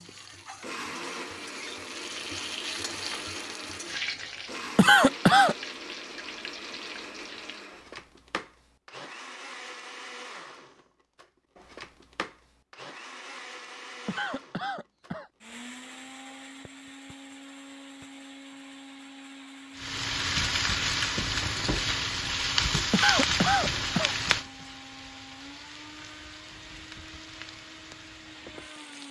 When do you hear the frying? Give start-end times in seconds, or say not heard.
0.0-7.7, 19.8-29.0.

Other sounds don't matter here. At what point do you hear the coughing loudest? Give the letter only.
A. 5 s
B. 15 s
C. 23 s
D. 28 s
A.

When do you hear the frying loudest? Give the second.
23 s.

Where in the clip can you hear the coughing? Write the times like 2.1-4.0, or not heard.
4.8-5.5, 14.1-15.3, 22.9-24.1.